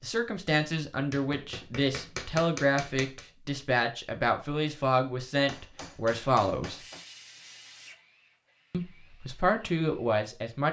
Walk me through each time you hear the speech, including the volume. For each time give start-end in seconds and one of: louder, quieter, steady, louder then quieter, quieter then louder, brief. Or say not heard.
0.0-6.8 steady
8.7-10.6 brief.